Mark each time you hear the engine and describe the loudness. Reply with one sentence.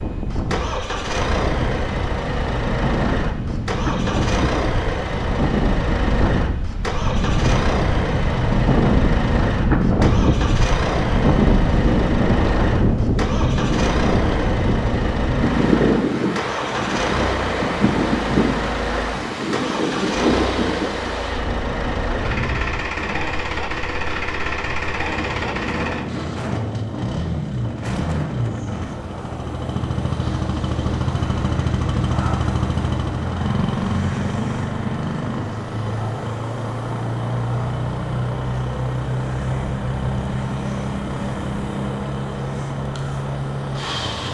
The engine can be heard from 0.0 to 44.3 s, at a steady volume.